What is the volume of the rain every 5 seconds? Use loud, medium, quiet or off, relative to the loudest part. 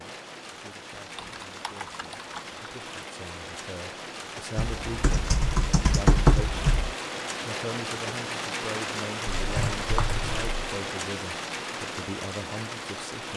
medium, loud, loud.